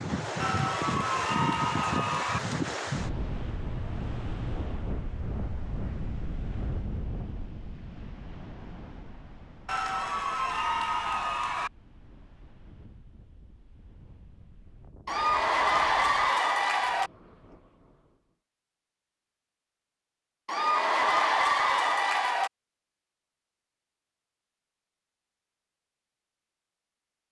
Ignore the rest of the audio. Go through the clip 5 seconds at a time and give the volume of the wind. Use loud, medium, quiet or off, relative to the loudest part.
loud, medium, quiet, quiet, off, off.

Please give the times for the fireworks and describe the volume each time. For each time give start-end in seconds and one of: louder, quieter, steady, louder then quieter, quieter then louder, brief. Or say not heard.
not heard.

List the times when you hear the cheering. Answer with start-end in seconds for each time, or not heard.
0.4-2.4, 9.7-11.7, 15.1-17.1, 20.4-22.5.